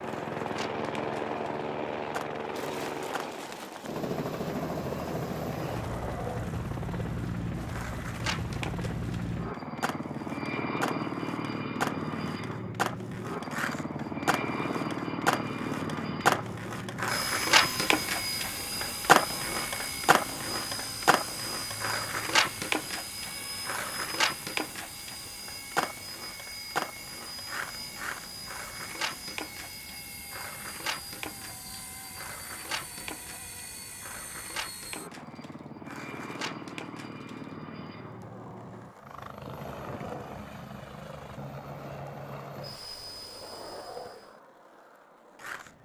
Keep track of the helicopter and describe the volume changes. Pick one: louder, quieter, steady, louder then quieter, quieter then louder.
quieter.